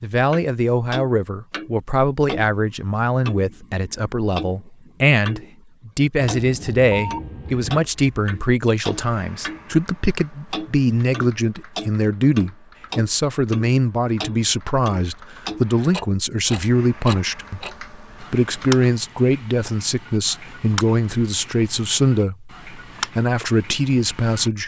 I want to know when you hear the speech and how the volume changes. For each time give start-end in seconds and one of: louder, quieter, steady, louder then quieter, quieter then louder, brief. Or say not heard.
0.0-24.6 steady.